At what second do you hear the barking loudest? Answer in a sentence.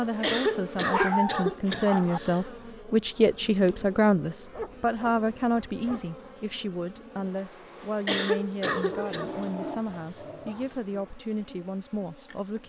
The volume of the barking peaks at 1 second.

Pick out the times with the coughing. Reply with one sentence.
You can hear the coughing from 0.2 to 2.4 s and from 8.1 to 9.3 s.